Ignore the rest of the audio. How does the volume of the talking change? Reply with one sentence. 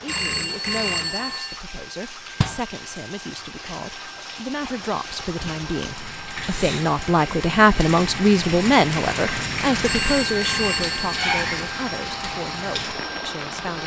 The volume of the talking goes up, then down.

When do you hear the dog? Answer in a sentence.
You can't hear the dog here.